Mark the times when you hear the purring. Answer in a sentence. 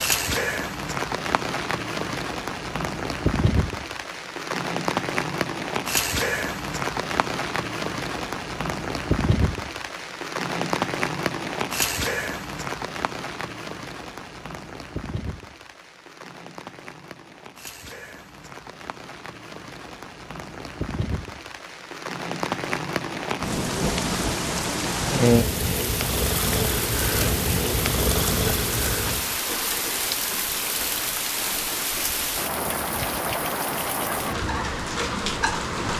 The purring can be heard from 23.9 to 29.4 s.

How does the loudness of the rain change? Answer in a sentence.
The loudness of the rain goes down, then up.